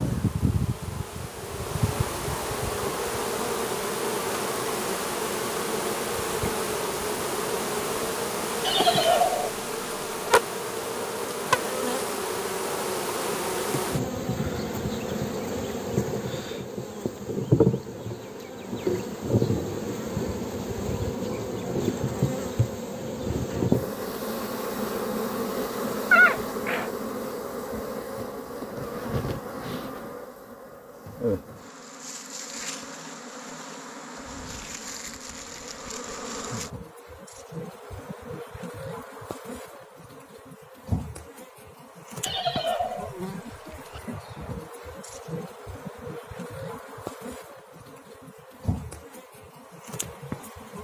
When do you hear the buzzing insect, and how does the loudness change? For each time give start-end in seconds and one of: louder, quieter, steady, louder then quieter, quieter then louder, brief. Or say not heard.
0.0-50.8 quieter.